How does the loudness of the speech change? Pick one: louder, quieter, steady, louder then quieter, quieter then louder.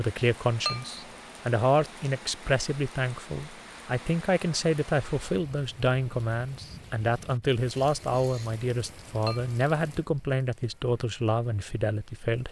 steady.